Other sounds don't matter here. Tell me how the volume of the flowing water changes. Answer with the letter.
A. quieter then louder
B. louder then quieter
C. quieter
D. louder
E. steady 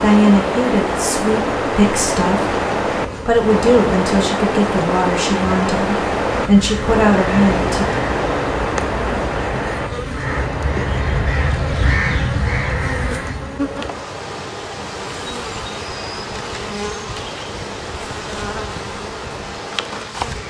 C.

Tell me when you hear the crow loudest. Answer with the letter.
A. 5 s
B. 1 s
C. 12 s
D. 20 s
C.